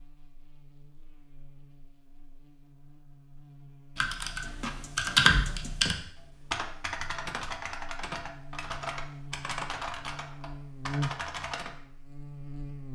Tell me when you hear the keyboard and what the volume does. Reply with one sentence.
You can hear the keyboard from 4.0 to 11.7 s, getting quieter.